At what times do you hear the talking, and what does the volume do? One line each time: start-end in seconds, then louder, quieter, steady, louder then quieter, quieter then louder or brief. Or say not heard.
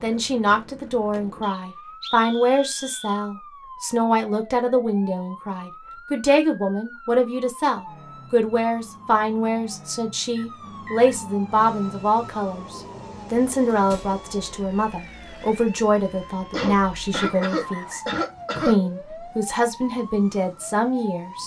0.0-21.4 steady.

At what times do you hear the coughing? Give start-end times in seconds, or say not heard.
16.5-18.8.